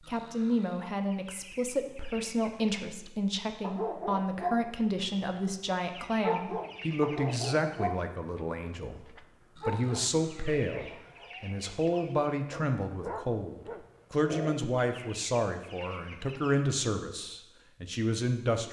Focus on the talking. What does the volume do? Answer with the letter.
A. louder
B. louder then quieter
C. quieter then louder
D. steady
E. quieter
D.